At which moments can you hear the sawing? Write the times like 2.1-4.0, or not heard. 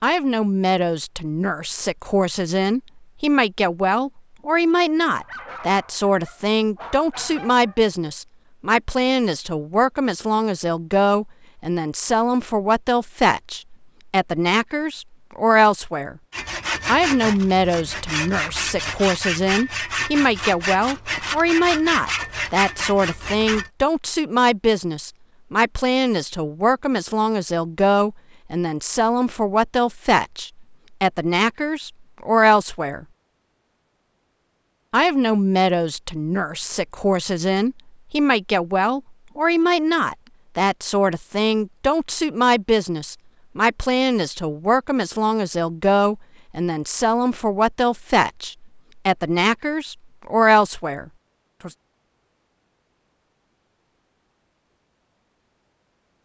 16.3-23.7.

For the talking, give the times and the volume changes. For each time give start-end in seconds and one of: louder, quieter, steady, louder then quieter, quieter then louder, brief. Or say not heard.
0.0-16.1 steady
16.9-33.0 steady
34.9-51.7 steady.